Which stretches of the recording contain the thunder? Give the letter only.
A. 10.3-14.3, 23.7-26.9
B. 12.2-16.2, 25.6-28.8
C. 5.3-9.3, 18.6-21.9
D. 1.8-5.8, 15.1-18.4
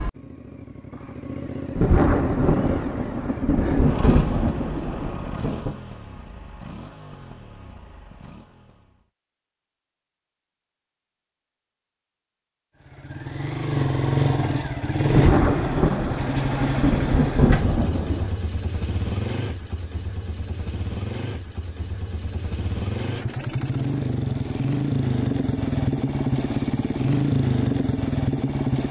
D.